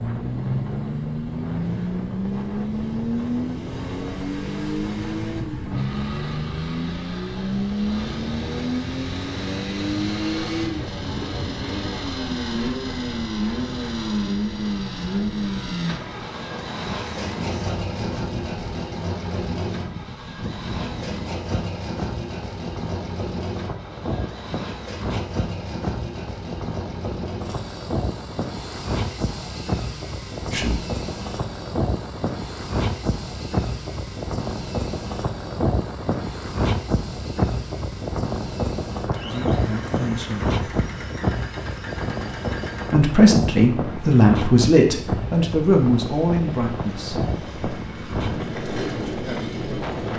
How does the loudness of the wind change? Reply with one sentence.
The volume of the wind goes up.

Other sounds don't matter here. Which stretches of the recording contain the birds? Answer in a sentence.
The birds can't be heard in this clip.